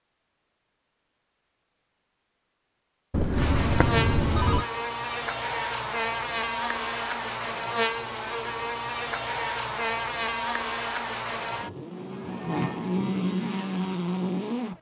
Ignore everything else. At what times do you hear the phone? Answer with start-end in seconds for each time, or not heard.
3.1-4.7.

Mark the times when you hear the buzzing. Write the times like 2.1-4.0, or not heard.
3.4-14.7.